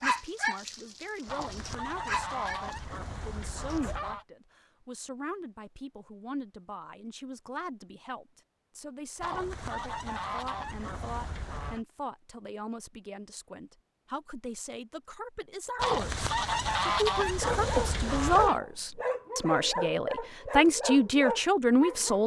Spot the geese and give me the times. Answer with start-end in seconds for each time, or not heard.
1.2-4.2, 9.2-11.8, 15.8-18.6.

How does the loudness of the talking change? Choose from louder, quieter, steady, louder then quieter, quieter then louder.
louder.